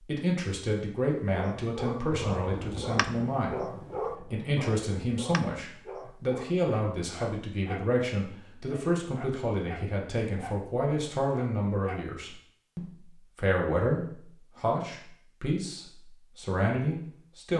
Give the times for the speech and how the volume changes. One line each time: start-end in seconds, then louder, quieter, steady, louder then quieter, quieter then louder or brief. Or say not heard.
0.0-17.5 steady.